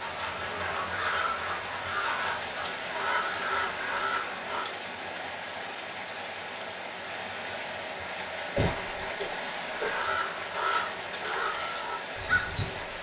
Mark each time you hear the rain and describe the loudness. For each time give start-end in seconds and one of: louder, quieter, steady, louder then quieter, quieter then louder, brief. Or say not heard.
0.0-12.9 steady.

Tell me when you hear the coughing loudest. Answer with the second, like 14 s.
9 s.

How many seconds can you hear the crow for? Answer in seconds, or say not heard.
8 s.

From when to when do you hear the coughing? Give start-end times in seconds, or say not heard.
8.3-10.1.